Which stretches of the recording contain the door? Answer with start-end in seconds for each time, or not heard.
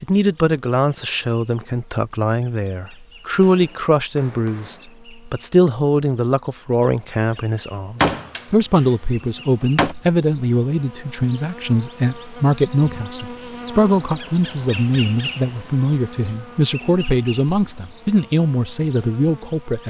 8.0-9.9.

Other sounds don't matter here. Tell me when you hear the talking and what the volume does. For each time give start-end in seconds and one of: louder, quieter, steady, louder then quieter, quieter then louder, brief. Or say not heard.
0.0-19.8 steady.